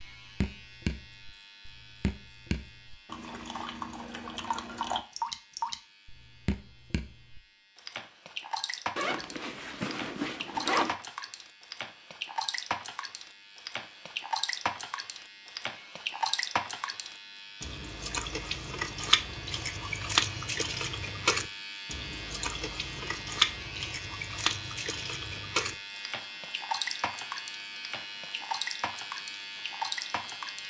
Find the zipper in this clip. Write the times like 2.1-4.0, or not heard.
8.9-10.9.